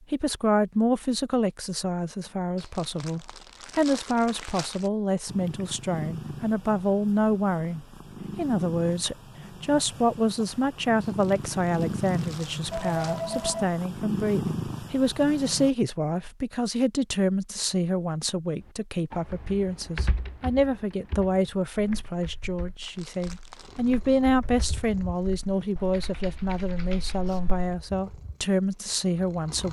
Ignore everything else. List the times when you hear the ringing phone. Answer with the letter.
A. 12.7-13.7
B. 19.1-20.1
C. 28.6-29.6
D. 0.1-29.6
A.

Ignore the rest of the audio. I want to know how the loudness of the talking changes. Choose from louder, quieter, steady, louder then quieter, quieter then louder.
steady.